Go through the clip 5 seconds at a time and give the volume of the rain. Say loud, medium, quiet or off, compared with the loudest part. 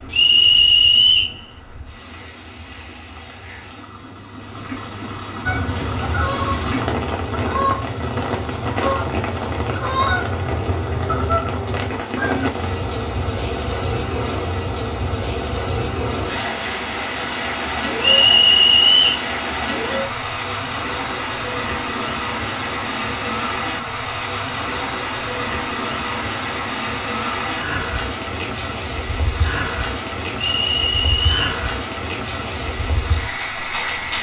quiet, loud, loud, loud, loud, loud, loud.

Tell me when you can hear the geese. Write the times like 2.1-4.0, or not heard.
5.5-12.5.